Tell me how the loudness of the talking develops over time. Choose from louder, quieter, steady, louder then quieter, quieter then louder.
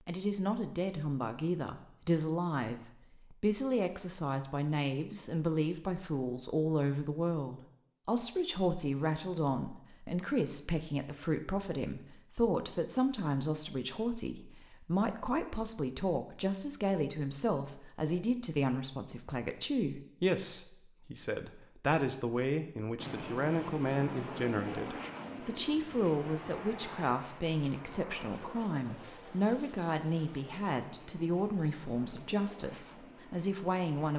steady.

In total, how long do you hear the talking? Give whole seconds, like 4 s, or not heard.
34 s.